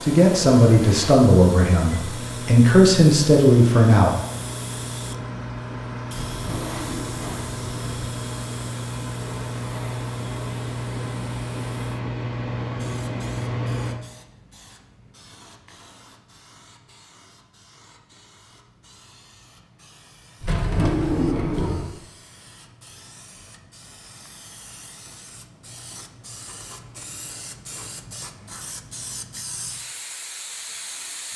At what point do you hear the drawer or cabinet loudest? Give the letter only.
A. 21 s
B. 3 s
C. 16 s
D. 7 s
A.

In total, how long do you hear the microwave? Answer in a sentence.
You can hear the microwave for 14 seconds altogether.